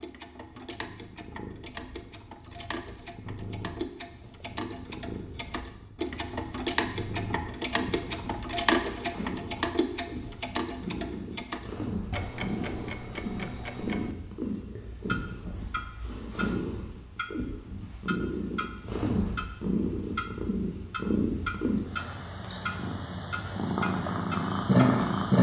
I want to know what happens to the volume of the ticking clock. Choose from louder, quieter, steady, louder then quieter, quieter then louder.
louder then quieter.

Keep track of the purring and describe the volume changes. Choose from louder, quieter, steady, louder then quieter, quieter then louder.
louder.